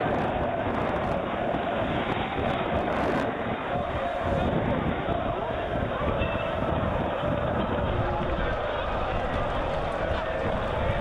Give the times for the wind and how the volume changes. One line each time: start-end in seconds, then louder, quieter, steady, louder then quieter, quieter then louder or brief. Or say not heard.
0.0-10.9 quieter.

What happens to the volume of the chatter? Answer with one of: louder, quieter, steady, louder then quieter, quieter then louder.
steady.